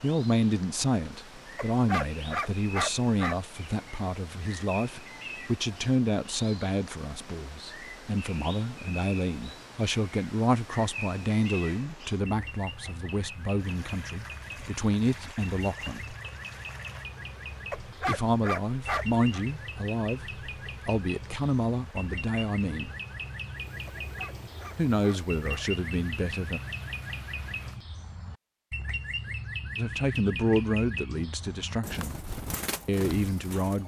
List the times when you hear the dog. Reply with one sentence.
You can hear the dog from 1.6 to 3.4 s, from 17.7 to 19.4 s and from 24.0 to 25.7 s.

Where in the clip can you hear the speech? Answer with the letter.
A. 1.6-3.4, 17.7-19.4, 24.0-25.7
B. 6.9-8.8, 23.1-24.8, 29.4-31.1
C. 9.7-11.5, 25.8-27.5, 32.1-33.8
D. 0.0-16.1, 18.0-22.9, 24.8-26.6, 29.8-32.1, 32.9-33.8
D.